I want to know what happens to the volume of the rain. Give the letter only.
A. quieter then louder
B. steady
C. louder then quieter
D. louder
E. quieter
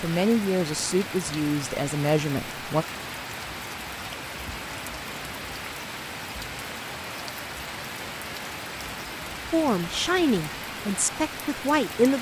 B.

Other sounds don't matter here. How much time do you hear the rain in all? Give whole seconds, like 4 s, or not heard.
12 s.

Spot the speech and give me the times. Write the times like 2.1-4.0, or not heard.
0.0-2.9, 9.5-12.1.